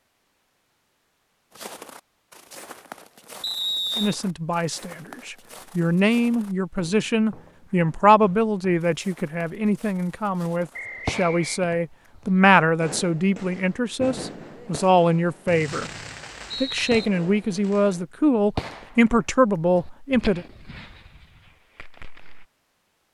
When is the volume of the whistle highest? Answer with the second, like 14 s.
4 s.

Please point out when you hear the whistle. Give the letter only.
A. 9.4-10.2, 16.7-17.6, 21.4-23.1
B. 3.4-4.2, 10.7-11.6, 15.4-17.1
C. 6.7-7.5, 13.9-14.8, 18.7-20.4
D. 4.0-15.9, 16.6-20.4
B.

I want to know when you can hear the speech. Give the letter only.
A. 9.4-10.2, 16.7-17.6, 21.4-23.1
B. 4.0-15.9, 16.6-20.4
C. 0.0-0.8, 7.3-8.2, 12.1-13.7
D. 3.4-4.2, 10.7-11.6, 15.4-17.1
B.